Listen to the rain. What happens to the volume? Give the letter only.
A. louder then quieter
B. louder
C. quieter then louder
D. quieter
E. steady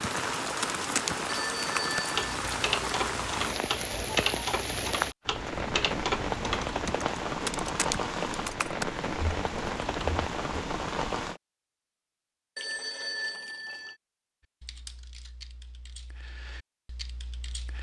E.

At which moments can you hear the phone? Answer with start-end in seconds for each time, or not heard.
1.2-2.4, 12.6-13.9.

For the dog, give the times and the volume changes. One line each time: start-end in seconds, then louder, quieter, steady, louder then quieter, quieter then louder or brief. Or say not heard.
not heard.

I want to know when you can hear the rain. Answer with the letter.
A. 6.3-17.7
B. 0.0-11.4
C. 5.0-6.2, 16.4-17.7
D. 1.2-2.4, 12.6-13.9
B.